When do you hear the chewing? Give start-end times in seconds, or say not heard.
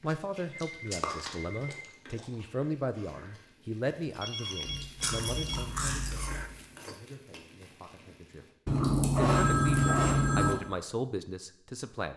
0.6-2.2, 4.7-6.5, 8.7-10.6.